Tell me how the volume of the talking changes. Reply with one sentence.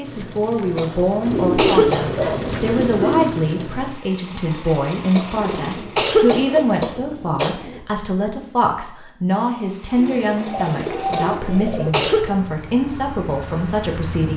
The loudness of the talking stays about the same.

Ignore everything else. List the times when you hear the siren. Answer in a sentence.
The siren can't be heard in this clip.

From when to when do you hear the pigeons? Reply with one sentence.
You can hear the pigeons from 1.2 to 3.2 s, from 5.3 to 7.9 s and from 9.9 to 11.9 s.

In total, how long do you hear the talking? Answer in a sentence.
The talking can be heard for 14 seconds in total.